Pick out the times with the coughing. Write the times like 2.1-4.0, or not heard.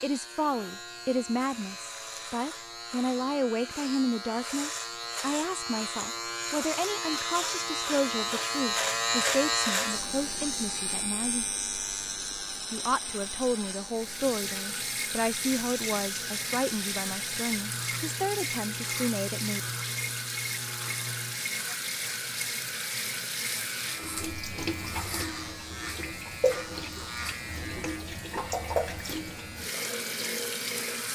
not heard.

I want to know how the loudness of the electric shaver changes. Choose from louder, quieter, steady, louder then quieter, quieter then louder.
louder then quieter.